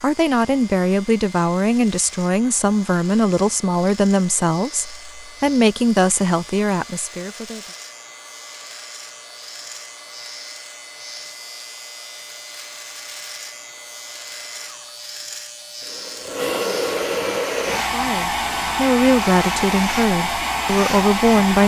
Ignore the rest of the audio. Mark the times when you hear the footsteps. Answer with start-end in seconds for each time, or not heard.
not heard.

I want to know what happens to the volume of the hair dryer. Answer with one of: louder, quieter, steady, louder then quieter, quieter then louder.
louder.